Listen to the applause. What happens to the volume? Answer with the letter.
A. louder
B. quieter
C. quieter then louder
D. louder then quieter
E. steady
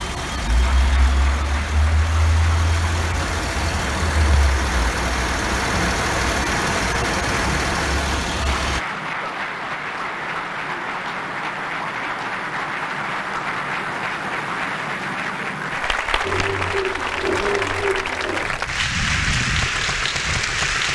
A.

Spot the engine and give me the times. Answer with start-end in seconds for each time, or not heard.
0.0-8.8, 16.2-20.8.